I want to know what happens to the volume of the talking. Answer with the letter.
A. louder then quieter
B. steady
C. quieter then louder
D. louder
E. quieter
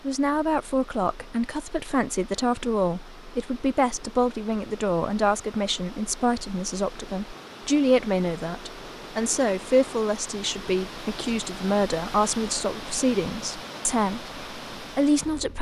B.